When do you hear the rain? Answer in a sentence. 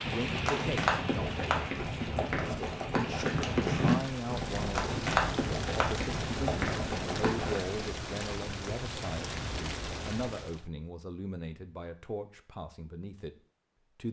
You can hear the rain from 0.0 to 10.7 s.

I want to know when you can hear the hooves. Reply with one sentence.
You can hear the hooves from 0.0 to 7.6 s.